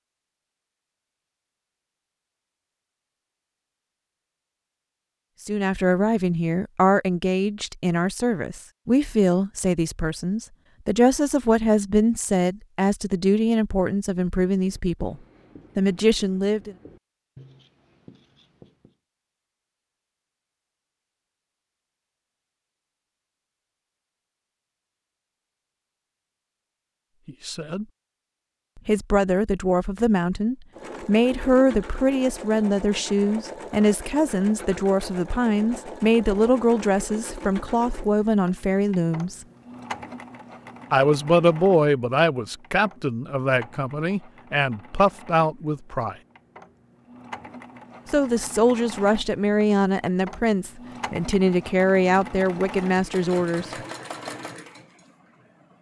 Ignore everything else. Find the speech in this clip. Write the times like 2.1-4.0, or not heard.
5.5-15.2, 15.8-16.8, 27.2-27.9, 28.9-39.5, 40.9-46.1, 48.1-53.6.